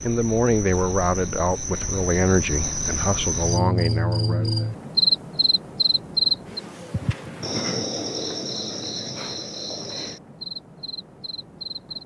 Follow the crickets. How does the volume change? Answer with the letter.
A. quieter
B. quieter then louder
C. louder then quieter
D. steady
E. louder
C.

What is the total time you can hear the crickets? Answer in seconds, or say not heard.
12 s.